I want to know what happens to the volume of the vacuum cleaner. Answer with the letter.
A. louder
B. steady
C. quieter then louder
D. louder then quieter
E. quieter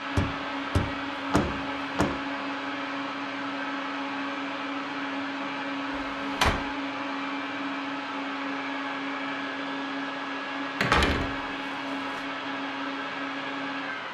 B.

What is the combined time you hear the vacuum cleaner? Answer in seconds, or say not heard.
14 s.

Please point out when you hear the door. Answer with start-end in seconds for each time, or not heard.
0.1-2.1, 6.0-6.5, 10.8-12.2.